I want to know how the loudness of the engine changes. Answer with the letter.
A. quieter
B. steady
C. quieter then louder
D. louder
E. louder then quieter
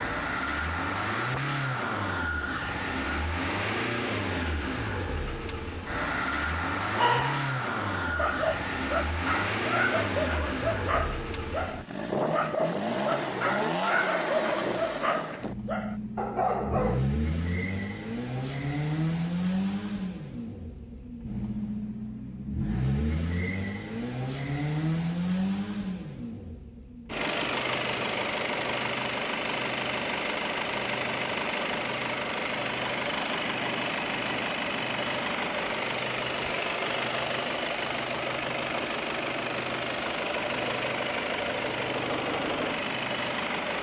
B.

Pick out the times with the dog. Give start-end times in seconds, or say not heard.
7.0-17.1.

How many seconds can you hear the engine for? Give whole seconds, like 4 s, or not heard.
44 s.